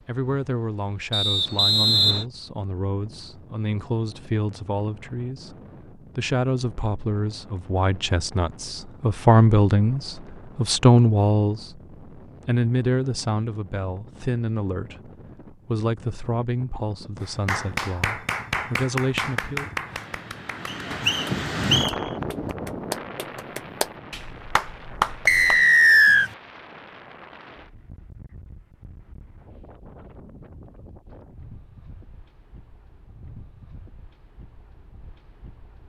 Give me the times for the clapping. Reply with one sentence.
You can hear the clapping from 17.2 to 25.6 s.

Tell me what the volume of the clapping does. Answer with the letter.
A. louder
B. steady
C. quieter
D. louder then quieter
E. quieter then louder
E.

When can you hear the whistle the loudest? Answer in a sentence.
The loudest moment of the whistle is at 26 seconds.